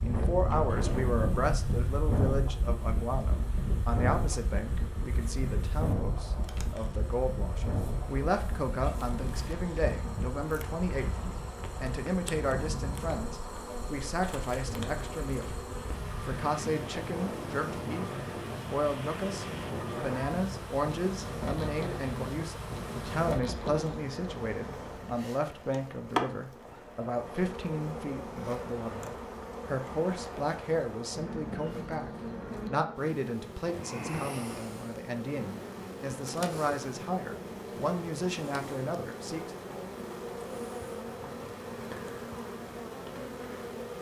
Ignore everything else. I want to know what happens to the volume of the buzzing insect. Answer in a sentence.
The volume of the buzzing insect goes up.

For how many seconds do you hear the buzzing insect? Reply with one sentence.
The buzzing insect can be heard for 44 seconds in total.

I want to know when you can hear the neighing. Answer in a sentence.
The neighing can't be heard in this clip.